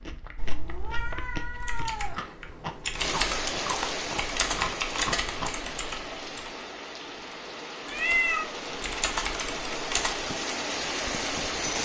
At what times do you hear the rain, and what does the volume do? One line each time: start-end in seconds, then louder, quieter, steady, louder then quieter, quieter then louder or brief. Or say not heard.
3.0-11.8 quieter then louder.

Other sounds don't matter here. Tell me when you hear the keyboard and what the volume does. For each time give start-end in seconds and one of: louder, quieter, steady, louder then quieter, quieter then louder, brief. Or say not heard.
1.6-6.5 louder then quieter
7.8-10.2 brief.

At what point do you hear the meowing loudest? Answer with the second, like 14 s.
8 s.